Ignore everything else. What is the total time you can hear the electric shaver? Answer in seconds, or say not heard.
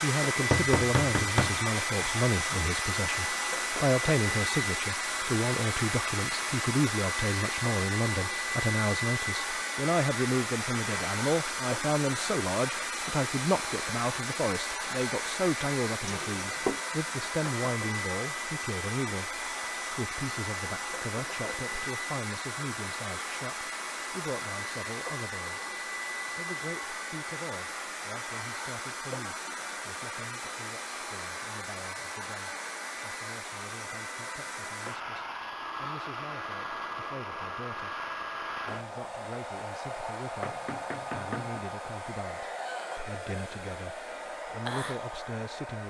not heard.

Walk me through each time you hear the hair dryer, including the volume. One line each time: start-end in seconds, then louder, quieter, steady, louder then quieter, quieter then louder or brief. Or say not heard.
0.0-45.8 quieter.